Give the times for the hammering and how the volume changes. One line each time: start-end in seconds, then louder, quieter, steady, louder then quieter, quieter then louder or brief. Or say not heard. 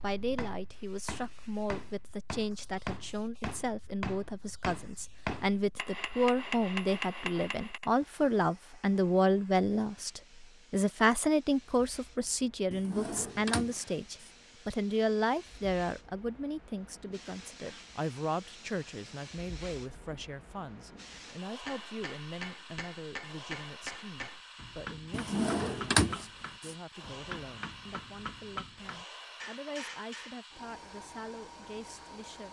0.2-7.9 louder
21.4-30.4 steady.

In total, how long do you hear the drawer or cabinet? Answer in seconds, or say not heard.
3 s.